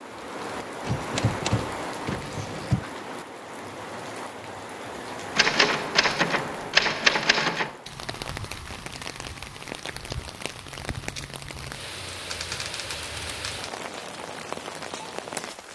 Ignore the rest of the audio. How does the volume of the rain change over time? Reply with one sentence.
The loudness of the rain stays about the same.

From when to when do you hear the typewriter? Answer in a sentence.
The typewriter can be heard from 0.8 to 2.9 s, from 5.3 to 7.8 s and from 12.3 to 13.7 s.